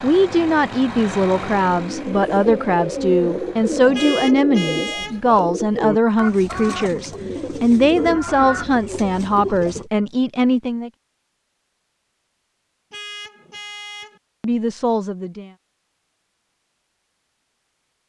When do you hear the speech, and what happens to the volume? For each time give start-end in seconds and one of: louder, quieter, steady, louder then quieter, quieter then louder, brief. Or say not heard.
0.0-10.9 steady
14.4-15.5 brief.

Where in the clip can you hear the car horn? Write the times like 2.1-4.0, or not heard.
3.9-5.2, 12.9-14.2.